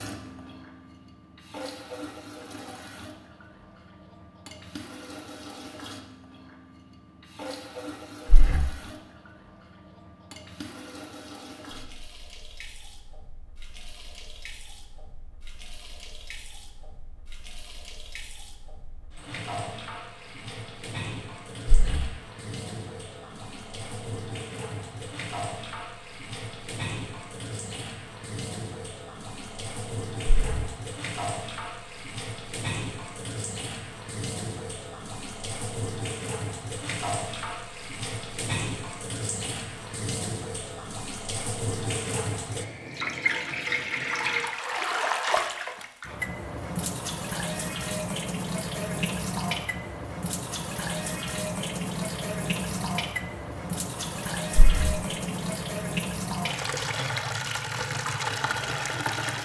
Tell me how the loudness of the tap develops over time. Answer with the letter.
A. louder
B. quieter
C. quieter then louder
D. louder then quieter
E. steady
A.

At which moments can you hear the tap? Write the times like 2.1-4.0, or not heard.
0.0-59.4.